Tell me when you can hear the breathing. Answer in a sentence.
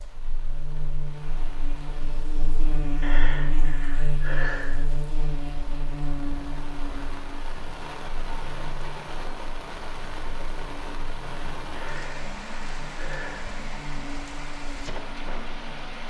The breathing can be heard from 3.0 to 4.8 s and from 11.8 to 13.6 s.